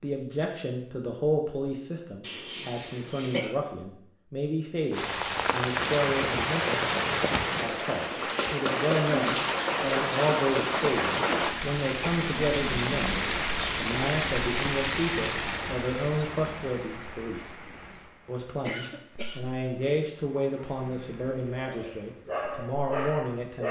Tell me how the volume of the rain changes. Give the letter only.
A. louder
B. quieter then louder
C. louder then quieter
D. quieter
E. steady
D.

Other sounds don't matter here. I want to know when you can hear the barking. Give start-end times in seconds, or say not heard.
21.6-23.6.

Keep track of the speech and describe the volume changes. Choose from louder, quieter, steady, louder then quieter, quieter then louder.
steady.